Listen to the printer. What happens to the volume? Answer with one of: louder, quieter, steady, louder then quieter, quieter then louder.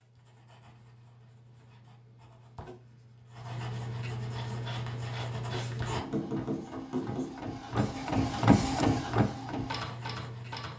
louder then quieter.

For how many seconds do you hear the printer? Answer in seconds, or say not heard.
6 s.